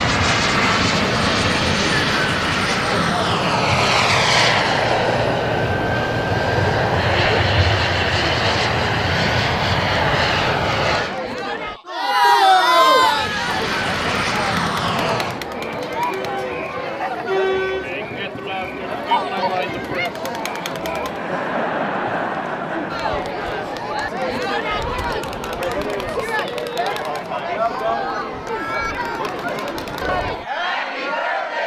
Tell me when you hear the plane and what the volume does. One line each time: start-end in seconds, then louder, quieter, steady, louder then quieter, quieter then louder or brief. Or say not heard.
0.0-11.2 steady
12.9-15.4 brief.